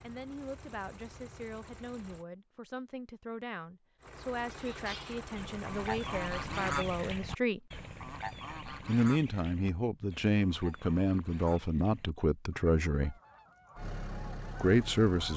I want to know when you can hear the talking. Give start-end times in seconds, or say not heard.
0.0-7.6, 8.8-13.2, 14.6-15.3.